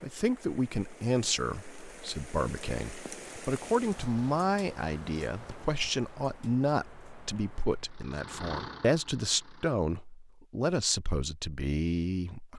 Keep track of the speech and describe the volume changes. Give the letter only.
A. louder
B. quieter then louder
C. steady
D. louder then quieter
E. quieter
C.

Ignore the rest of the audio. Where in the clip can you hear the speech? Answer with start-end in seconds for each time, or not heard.
0.0-12.5.